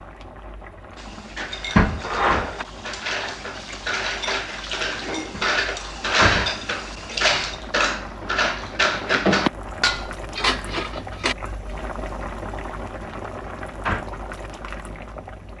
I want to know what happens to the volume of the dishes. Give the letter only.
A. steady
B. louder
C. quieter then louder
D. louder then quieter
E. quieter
B.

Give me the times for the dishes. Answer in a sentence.
The dishes can be heard from 0.9 to 11.3 s.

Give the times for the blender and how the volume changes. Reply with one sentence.
The blender can't be heard in this clip.